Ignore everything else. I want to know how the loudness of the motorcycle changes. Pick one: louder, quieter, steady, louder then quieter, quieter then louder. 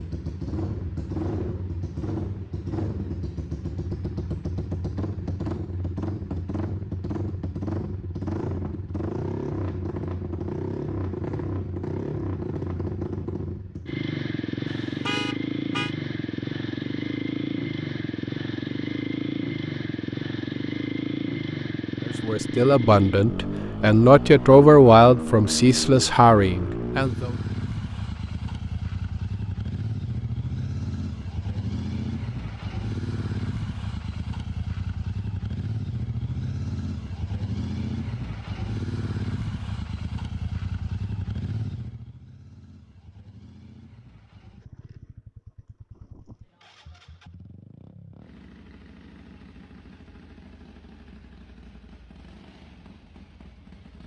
quieter.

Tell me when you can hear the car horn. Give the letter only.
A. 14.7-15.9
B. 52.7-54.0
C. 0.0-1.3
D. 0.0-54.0
A.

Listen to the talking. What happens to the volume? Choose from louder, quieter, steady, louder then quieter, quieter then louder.
louder then quieter.